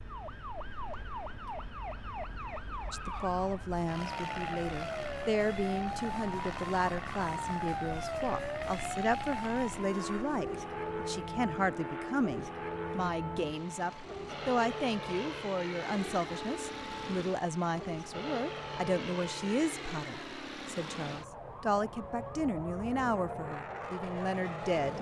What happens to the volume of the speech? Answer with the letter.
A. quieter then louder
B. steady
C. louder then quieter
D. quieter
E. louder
B.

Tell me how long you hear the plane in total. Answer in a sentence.
The plane can be heard for 25 seconds in total.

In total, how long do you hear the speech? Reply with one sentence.
The speech can be heard for 22 seconds in total.